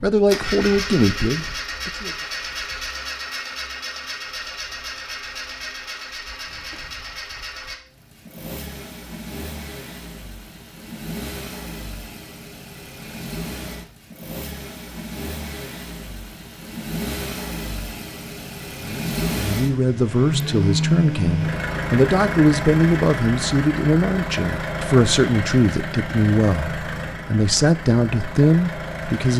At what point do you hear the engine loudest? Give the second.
21 s.